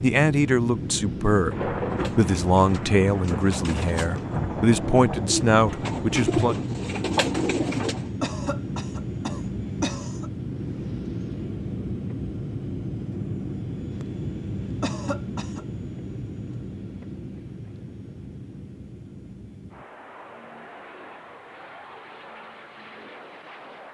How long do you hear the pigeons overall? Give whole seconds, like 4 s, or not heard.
6 s.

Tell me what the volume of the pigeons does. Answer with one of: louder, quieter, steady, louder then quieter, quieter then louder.
louder.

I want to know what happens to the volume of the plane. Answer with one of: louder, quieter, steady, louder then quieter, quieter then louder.
quieter.